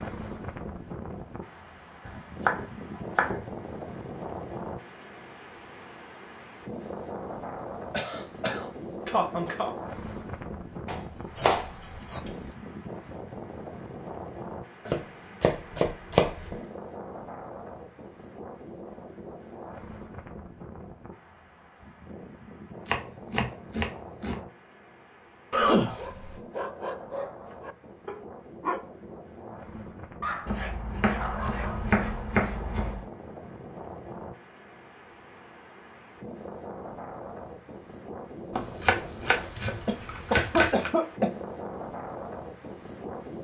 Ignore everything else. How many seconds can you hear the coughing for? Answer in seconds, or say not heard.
4 s.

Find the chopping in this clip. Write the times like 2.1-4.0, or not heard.
2.0-3.5, 10.8-12.3, 14.8-16.6, 22.9-24.4, 30.4-33.0, 38.5-40.9.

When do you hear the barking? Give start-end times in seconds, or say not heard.
25.9-32.2.